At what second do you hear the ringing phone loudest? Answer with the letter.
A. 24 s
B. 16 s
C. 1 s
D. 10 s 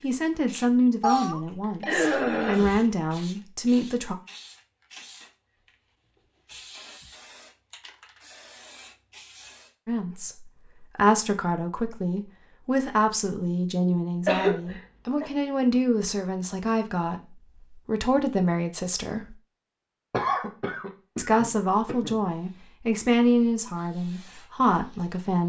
C.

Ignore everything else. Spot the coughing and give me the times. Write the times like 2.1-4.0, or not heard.
1.9-2.8, 14.2-15.3, 20.1-22.1.